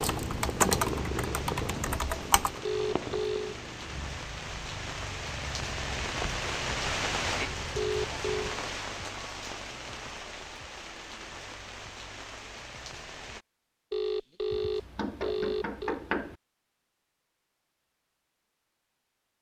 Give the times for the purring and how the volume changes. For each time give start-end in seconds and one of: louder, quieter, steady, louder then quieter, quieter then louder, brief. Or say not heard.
0.0-8.5 quieter.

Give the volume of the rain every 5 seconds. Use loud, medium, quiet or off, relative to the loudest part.
medium, loud, medium, off.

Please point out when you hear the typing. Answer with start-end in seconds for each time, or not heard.
0.0-2.6.